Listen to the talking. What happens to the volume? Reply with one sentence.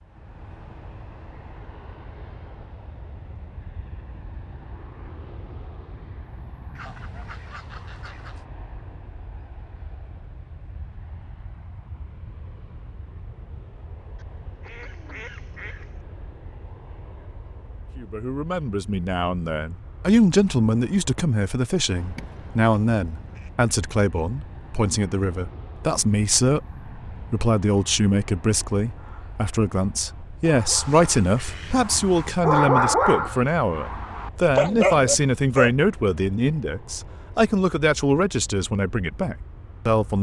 The loudness of the talking stays about the same.